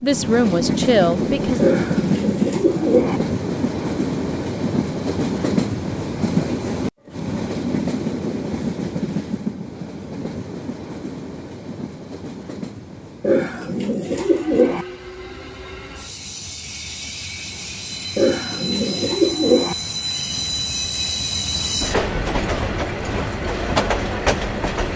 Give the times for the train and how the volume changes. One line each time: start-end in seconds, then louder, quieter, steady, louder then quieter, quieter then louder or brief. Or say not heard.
0.0-24.9 quieter then louder.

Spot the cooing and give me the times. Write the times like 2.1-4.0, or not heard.
1.6-3.2, 13.2-14.8, 18.1-19.8.